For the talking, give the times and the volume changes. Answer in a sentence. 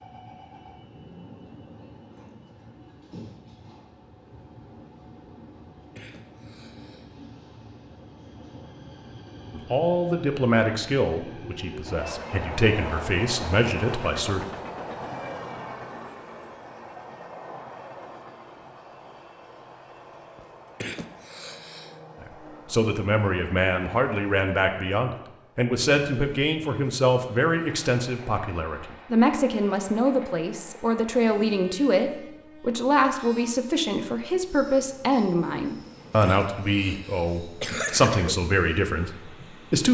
You can hear the talking from 9.5 to 14.4 s, getting quieter then louder; and from 22.2 to 39.8 s, at a steady volume.